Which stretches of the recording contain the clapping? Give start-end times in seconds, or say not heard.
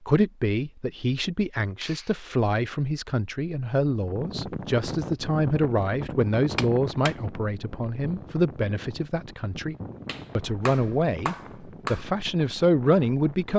1.8-2.2, 6.5-7.2, 10.1-12.1.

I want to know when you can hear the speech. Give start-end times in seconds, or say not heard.
0.1-9.8, 10.3-13.5.